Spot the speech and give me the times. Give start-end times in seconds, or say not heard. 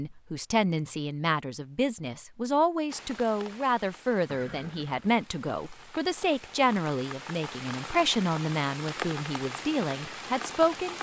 0.0-10.9.